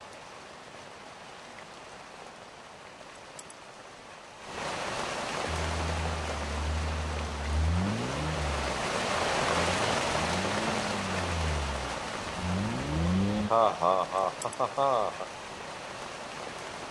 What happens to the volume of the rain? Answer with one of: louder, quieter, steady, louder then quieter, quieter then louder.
louder then quieter.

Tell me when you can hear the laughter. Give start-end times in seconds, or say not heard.
13.1-15.2.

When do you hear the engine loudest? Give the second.
13 s.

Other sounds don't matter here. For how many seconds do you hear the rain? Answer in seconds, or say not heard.
17 s.